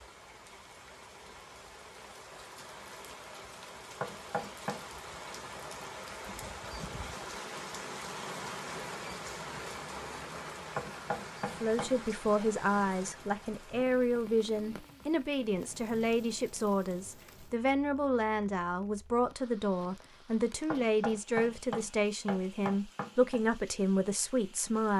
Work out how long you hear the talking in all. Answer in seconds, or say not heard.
13 s.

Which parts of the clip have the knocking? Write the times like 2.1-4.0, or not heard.
4.0-4.8, 10.8-11.9, 20.7-23.4.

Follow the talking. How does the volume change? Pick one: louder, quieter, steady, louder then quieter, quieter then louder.
steady.